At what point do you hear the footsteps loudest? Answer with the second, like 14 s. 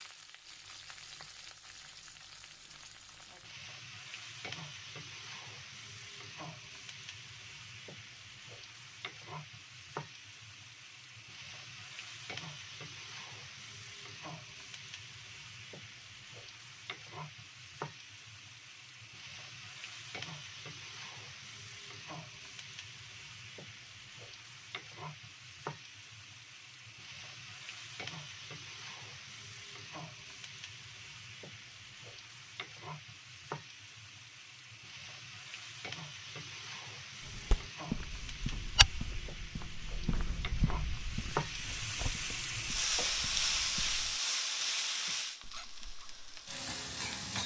39 s.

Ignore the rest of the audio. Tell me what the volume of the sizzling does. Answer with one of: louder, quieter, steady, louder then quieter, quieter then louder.
louder.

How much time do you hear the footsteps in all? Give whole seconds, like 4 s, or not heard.
7 s.